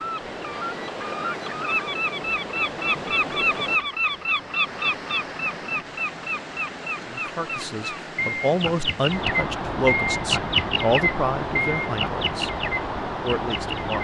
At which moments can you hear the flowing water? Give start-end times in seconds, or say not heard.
0.0-14.0.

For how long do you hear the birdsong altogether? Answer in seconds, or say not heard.
14 s.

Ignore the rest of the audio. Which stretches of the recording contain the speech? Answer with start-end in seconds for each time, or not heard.
7.0-14.0.